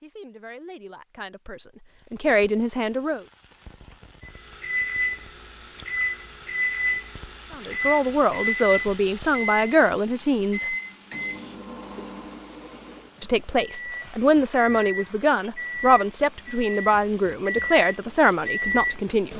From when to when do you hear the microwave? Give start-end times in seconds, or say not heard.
4.2-19.3.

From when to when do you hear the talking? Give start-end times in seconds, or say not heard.
0.0-3.2, 7.5-10.8, 13.2-19.3.